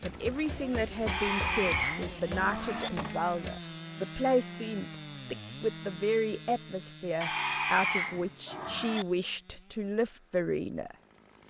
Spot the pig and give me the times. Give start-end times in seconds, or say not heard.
1.1-2.9, 7.2-9.1.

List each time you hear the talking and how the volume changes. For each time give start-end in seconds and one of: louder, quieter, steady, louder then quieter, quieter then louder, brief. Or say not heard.
0.0-10.9 steady.